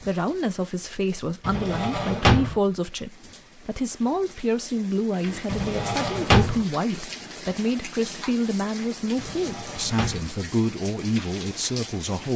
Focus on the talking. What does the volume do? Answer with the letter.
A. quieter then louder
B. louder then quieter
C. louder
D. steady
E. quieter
D.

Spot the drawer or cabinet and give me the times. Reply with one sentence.
You can hear the drawer or cabinet from 1.4 to 2.5 s, from 5.5 to 6.6 s and from 9.2 to 10.3 s.